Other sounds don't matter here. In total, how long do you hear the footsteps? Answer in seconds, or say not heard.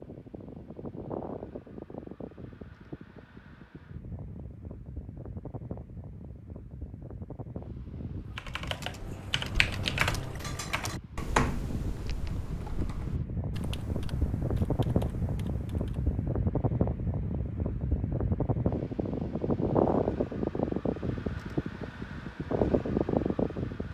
not heard.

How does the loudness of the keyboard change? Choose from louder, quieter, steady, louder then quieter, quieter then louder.
quieter.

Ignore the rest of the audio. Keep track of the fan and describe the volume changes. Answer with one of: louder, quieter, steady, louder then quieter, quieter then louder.
louder.